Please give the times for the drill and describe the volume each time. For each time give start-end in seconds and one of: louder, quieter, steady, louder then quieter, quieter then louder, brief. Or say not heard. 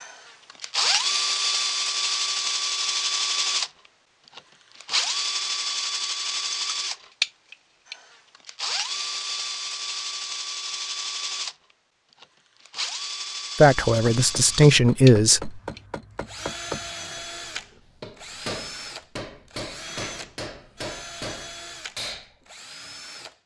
0.0-23.4 quieter.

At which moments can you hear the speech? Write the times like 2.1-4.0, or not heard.
13.6-15.6.